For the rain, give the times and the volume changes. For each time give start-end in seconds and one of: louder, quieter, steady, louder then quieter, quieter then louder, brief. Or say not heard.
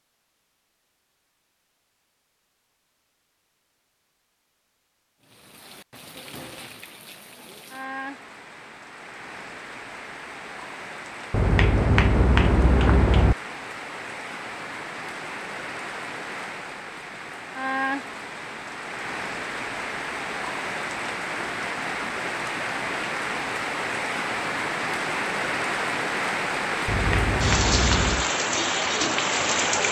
5.2-29.8 louder.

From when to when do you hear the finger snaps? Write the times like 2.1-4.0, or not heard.
11.3-13.3, 26.9-28.2.